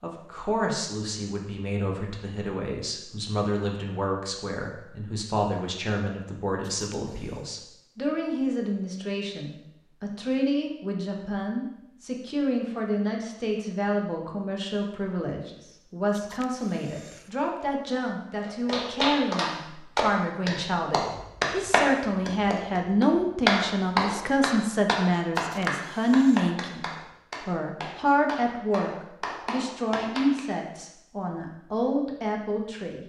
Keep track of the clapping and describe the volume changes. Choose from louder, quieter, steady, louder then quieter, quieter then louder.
quieter.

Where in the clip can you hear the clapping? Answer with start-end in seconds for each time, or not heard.
18.4-30.4.